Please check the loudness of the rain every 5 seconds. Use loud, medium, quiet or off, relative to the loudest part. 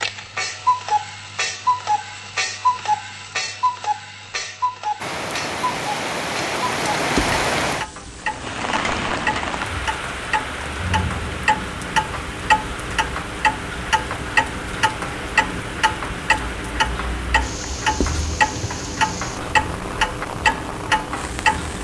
off, loud, medium, medium, medium.